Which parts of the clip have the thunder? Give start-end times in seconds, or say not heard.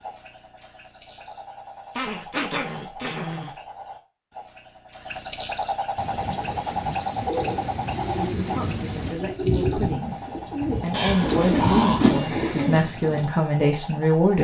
6.0-9.2.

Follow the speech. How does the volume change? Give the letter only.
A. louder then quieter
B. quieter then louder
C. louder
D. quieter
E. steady
C.